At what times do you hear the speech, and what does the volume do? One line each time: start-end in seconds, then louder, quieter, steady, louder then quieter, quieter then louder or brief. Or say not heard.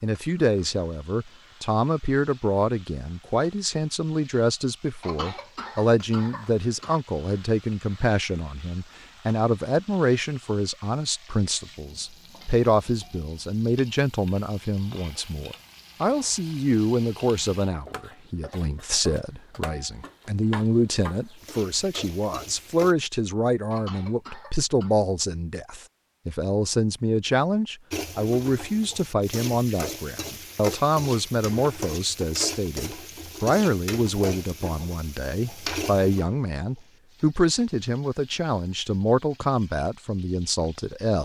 0.0-41.2 steady.